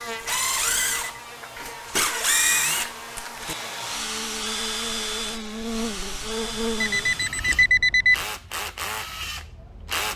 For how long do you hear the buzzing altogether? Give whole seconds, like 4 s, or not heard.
7 s.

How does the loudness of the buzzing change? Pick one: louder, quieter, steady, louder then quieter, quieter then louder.
louder.